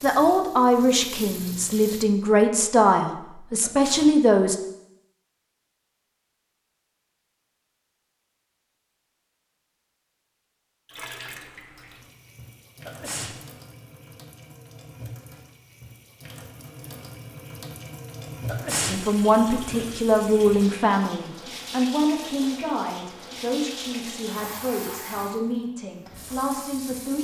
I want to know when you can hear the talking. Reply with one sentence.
You can hear the talking from 0.0 to 4.5 s and from 18.9 to 27.1 s.